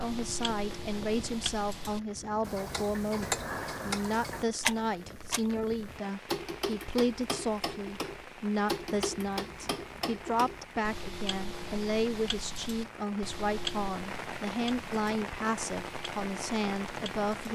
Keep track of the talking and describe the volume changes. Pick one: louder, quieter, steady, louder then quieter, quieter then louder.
steady.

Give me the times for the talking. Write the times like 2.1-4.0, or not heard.
0.0-17.5.